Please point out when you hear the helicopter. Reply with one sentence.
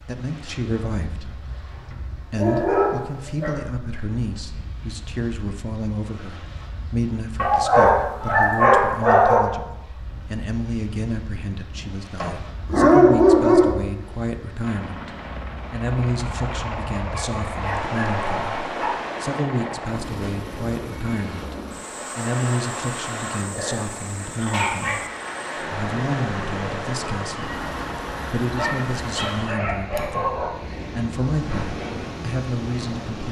You can hear the helicopter from 14.6 to 29.3 s.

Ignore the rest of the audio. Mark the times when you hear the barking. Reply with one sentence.
The barking can be heard from 2.3 to 3.5 s, from 7.3 to 9.4 s, from 11.8 to 13.7 s, from 17.1 to 18.9 s, from 23.4 to 25.1 s and from 28.6 to 30.5 s.